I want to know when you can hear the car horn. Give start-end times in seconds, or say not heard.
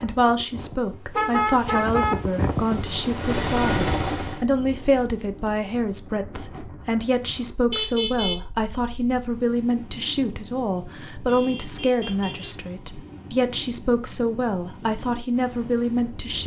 1.1-2.1, 7.7-8.4, 11.2-12.6.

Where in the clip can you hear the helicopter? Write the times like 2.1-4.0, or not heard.
2.5-4.5.